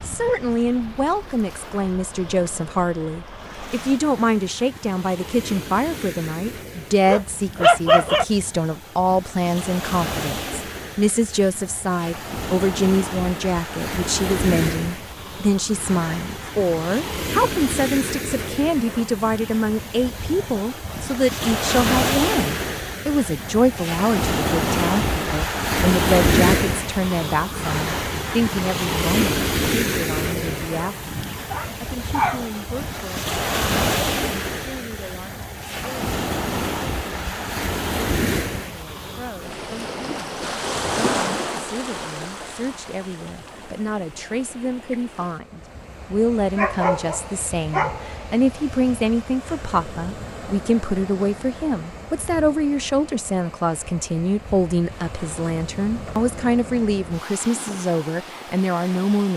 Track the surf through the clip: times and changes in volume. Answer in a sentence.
You can hear the surf from 0.0 to 59.3 s, getting louder then quieter.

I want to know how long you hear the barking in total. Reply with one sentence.
You can hear the barking for 4 seconds altogether.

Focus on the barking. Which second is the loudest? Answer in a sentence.
The volume of the barking peaks at 8 seconds.